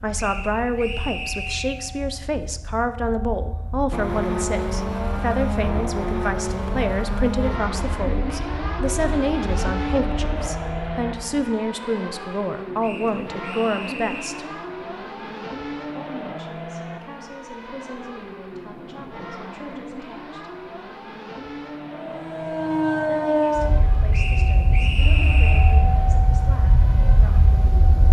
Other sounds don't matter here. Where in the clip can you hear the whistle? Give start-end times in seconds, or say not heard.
0.1-1.8, 12.8-14.4, 24.1-25.8.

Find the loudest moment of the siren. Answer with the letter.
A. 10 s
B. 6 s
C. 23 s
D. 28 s
C.